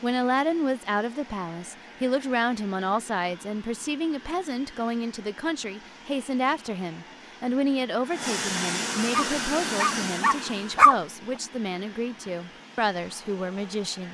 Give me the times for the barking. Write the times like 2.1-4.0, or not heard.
9.1-10.9.